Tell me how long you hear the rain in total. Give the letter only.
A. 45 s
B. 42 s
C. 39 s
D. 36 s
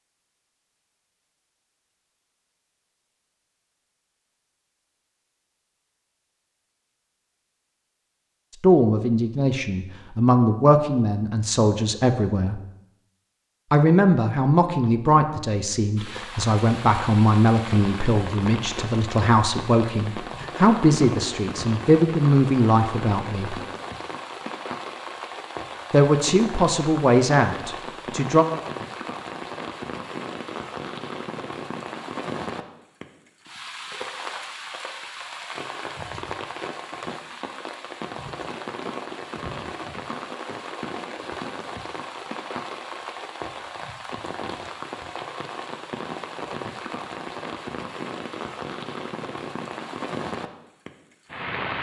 D.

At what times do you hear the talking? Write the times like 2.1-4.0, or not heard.
8.6-12.6, 13.7-23.6, 25.9-28.4.